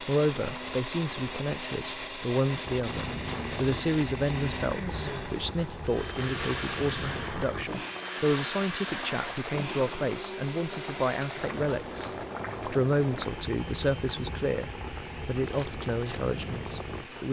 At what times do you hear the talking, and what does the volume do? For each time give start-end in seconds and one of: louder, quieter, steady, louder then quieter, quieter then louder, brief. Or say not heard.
0.0-17.2 steady.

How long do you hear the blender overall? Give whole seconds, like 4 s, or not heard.
17 s.